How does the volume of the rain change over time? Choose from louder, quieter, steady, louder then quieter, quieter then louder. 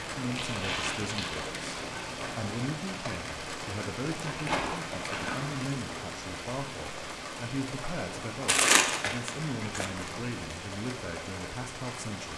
steady.